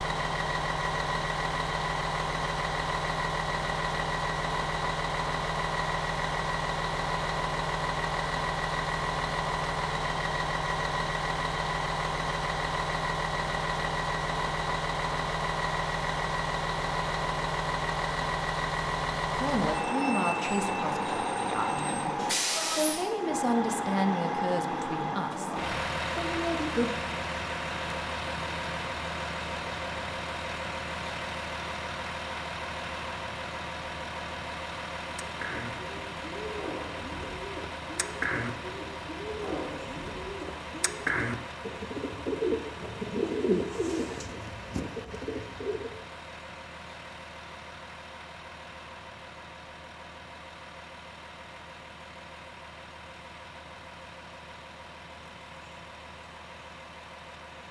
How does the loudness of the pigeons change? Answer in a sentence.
The loudness of the pigeons goes up.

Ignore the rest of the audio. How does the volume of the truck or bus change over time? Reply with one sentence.
The volume of the truck or bus goes down.